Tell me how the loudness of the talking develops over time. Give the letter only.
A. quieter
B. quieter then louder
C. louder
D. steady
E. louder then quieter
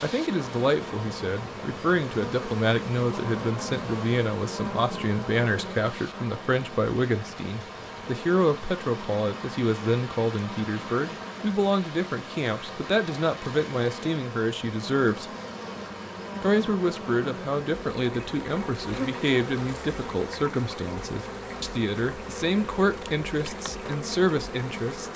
D.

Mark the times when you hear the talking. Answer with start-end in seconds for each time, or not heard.
0.0-15.2, 16.4-25.1.